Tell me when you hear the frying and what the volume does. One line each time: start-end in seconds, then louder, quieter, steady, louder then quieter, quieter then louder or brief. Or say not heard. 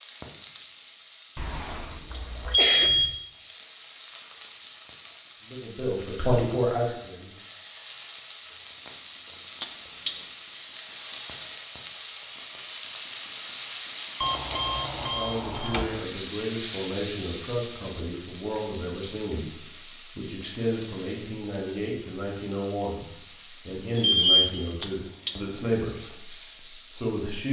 0.0-27.4 louder then quieter.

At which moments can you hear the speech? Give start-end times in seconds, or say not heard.
5.5-7.3, 15.0-27.4.